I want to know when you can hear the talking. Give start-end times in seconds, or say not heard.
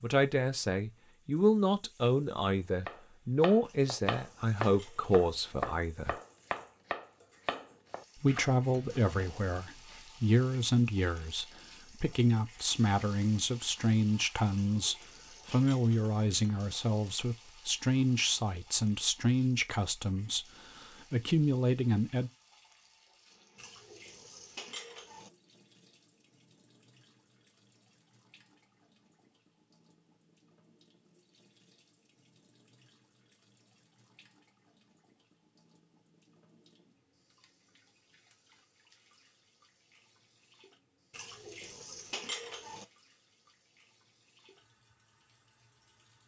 0.0-6.2, 8.2-20.4, 21.1-22.3.